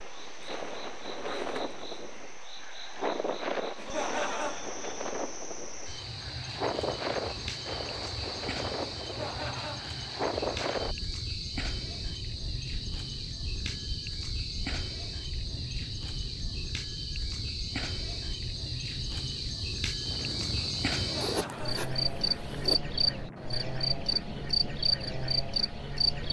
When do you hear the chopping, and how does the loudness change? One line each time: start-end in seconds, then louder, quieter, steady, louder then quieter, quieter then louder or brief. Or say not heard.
not heard.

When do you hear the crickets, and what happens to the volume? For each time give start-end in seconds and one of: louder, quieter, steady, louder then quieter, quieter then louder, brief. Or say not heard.
0.0-26.2 louder.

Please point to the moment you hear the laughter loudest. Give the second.
4 s.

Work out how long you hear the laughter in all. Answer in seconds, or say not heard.
3 s.